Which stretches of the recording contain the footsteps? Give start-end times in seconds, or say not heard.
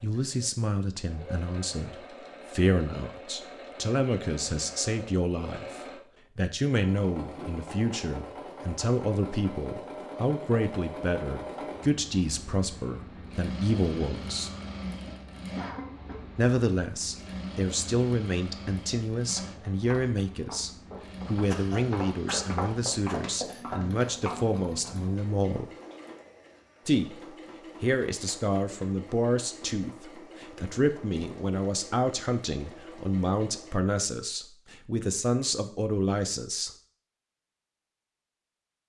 19.2-24.9.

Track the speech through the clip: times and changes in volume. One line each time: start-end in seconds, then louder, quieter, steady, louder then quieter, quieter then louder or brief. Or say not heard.
0.0-14.5 steady
16.4-25.7 steady
26.9-36.7 steady.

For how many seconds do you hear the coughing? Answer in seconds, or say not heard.
2 s.